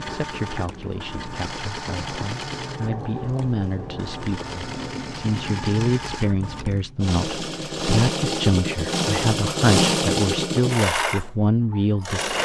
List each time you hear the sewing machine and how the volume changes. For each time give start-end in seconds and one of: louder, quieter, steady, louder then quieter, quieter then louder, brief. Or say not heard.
0.0-12.3 louder.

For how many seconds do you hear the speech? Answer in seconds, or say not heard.
12 s.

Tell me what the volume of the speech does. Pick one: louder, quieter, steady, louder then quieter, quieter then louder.
louder.